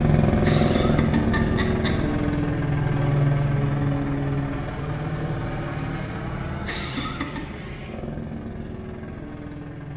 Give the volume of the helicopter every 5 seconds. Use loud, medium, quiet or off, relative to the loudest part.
loud, medium.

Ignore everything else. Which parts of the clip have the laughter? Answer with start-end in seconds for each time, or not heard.
0.4-1.9, 6.7-7.5.